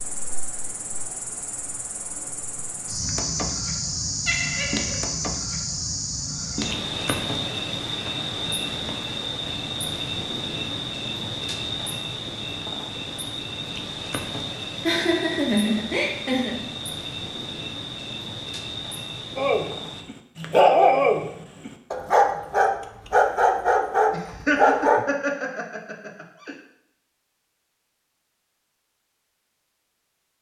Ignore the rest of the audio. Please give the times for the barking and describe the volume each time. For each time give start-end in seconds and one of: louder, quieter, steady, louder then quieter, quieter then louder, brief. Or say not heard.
19.4-25.1 steady.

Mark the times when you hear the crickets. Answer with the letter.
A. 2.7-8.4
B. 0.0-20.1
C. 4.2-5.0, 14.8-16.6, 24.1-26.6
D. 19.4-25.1
B.